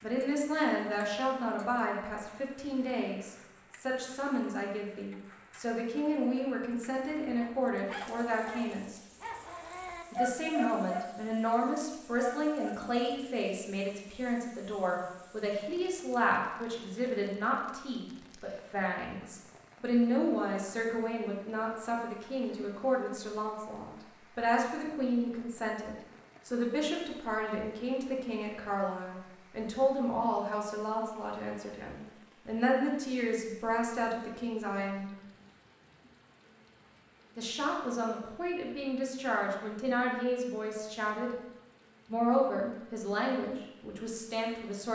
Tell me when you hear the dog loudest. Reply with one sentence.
The loudest moment of the dog is at 10 seconds.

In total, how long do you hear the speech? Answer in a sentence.
The speech can be heard for 41 seconds in total.